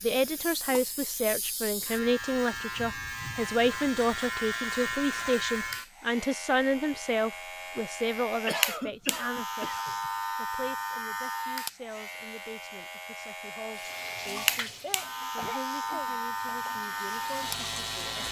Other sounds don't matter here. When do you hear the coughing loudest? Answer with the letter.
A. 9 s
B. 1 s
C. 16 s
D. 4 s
A.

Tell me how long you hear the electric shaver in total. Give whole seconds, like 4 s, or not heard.
18 s.